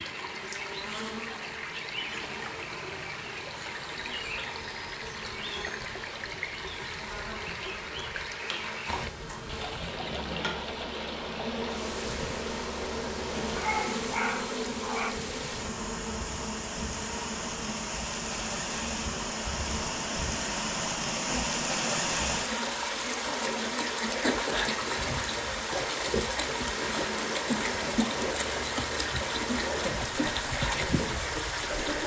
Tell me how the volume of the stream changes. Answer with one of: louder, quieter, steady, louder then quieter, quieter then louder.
louder.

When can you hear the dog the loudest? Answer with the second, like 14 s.
14 s.